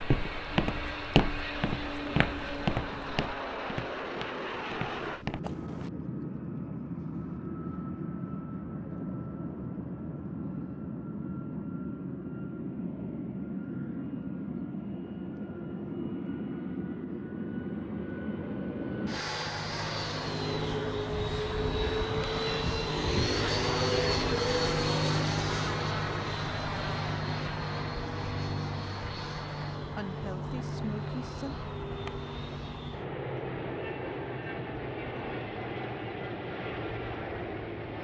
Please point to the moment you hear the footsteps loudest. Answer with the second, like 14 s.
1 s.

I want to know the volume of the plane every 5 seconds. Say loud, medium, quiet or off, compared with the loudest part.
medium, medium, medium, medium, loud, loud, medium, medium.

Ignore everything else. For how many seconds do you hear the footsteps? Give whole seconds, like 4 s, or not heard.
6 s.